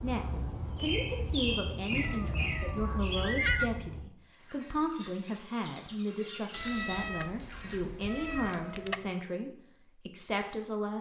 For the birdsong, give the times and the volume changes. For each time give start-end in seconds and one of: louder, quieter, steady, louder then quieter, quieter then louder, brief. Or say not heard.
0.0-7.8 quieter then louder.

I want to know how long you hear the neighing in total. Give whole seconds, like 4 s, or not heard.
2 s.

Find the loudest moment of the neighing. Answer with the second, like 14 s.
3 s.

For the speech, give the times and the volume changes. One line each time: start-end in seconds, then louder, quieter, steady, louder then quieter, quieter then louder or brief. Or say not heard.
0.0-10.9 steady.